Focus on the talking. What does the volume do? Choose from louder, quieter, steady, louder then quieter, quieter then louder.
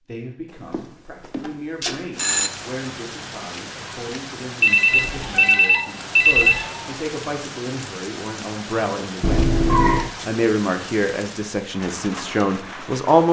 louder.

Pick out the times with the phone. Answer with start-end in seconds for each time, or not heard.
0.7-2.5, 4.6-6.6, 9.2-10.1.